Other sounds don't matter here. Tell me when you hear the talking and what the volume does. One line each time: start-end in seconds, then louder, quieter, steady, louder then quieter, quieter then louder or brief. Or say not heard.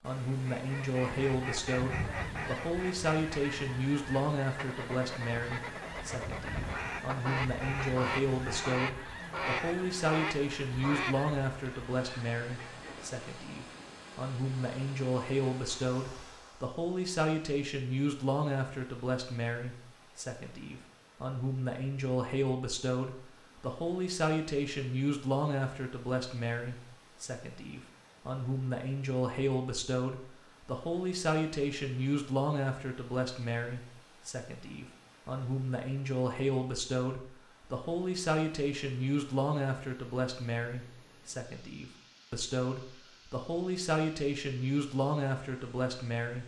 0.0-46.4 steady.